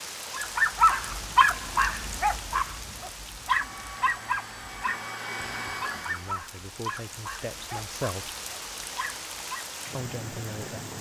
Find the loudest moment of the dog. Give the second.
1 s.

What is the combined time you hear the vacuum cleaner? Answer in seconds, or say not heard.
3 s.